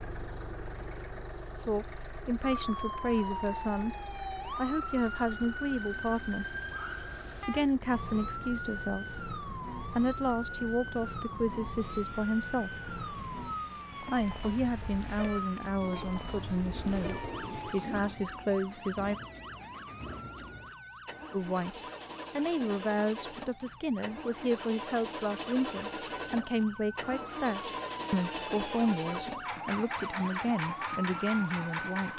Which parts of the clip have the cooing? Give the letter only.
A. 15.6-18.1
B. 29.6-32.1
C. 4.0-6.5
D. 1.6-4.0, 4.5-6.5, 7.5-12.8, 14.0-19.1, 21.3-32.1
A.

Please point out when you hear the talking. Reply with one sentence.
The talking can be heard from 1.6 to 4.0 s, from 4.5 to 6.5 s, from 7.5 to 12.8 s, from 14.0 to 19.1 s and from 21.3 to 32.1 s.